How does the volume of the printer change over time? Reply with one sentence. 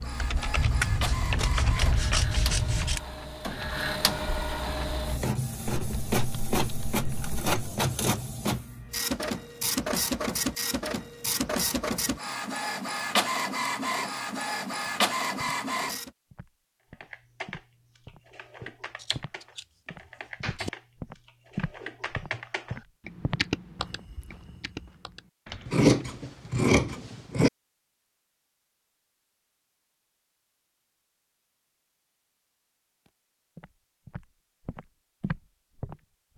The volume of the printer goes up.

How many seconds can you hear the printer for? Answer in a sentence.
You can hear the printer for 16 seconds altogether.